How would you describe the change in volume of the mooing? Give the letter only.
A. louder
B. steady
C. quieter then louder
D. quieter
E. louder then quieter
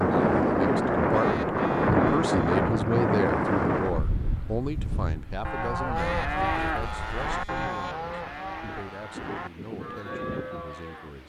D.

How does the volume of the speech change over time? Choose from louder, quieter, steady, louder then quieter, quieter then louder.
quieter.